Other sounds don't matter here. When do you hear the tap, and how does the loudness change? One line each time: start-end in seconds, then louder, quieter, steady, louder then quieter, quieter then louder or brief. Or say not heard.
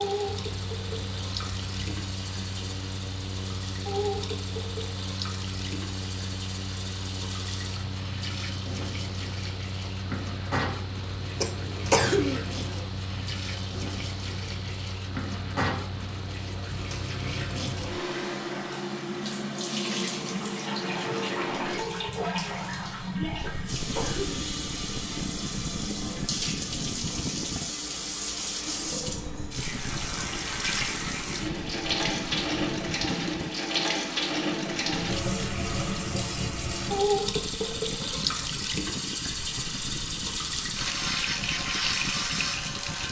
0.0-43.0 louder.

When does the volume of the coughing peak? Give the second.
12 s.